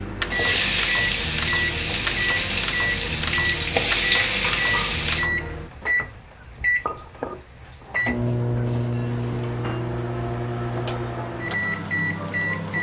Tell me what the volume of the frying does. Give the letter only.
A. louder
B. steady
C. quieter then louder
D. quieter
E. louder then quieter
D.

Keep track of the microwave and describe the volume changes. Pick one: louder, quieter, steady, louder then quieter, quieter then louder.
steady.